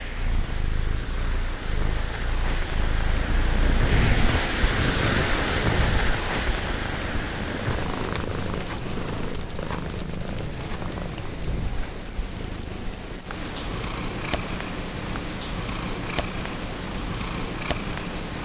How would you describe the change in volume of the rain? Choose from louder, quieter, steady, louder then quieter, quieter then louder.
louder then quieter.